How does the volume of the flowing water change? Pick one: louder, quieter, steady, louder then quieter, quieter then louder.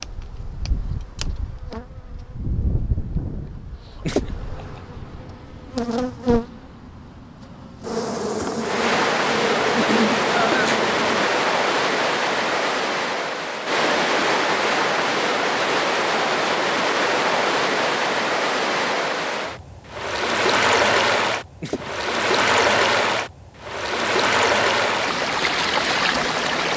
steady.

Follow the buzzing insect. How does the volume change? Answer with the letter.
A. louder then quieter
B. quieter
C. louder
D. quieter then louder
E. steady
C.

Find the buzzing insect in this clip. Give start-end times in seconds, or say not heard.
0.0-11.2.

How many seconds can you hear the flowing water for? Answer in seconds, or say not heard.
18 s.